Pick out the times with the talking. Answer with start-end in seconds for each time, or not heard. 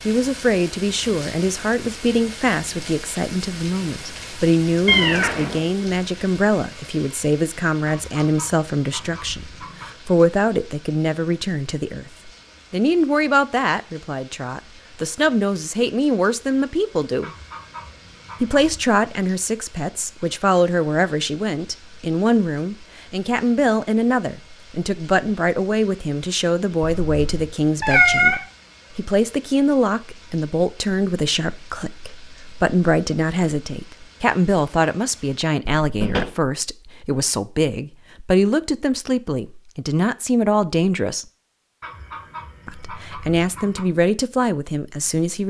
0.1-17.4, 18.4-41.2, 42.6-45.4.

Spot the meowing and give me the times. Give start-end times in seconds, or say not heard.
4.8-5.7, 26.8-28.4, 35.8-36.3.